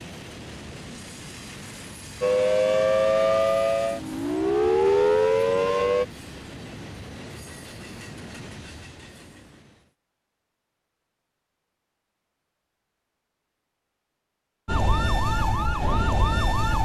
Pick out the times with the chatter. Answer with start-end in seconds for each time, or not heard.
not heard.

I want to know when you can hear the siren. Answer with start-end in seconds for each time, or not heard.
2.2-6.0, 14.7-16.7.